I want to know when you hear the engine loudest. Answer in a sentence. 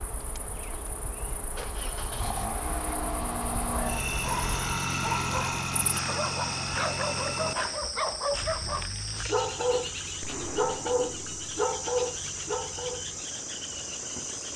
The loudest moment of the engine is at 5 seconds.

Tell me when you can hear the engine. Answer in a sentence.
You can hear the engine from 0.1 to 14.5 s.